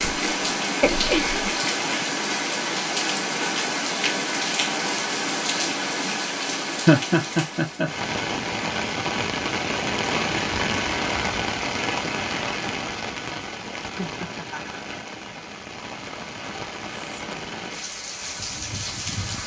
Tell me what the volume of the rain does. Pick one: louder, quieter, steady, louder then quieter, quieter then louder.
quieter.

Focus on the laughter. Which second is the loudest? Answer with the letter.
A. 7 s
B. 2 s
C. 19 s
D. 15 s
A.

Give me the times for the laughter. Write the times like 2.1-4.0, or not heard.
0.8-1.6, 6.8-7.9, 13.8-14.8.